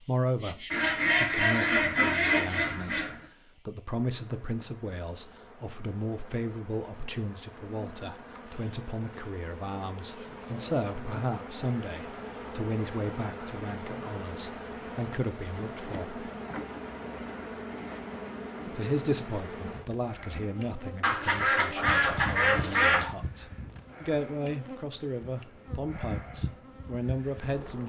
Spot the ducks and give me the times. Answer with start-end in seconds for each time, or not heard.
0.7-3.1, 21.0-23.1.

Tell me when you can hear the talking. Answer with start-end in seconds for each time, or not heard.
0.0-16.2, 18.6-27.8.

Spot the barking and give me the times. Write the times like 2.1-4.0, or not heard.
not heard.